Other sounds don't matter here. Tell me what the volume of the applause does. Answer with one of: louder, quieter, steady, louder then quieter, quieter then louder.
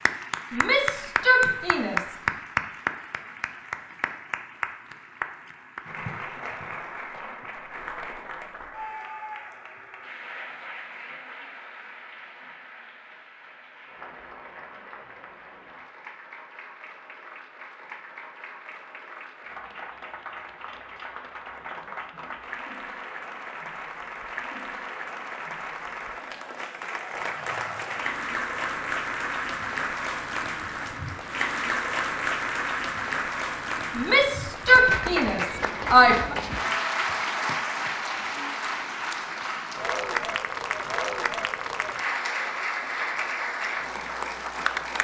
quieter then louder.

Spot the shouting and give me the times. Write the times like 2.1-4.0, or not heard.
0.5-2.1, 34.0-36.4.